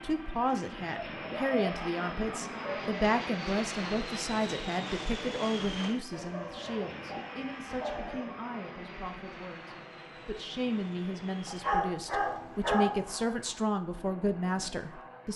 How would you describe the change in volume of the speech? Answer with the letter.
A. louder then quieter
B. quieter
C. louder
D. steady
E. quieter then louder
E.